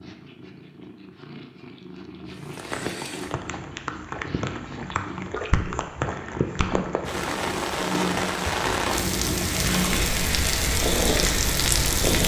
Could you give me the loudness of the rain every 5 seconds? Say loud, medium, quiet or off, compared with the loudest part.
medium, loud, loud.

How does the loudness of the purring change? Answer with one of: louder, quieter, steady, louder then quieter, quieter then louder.
louder.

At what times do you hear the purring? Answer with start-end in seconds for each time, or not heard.
0.0-12.2.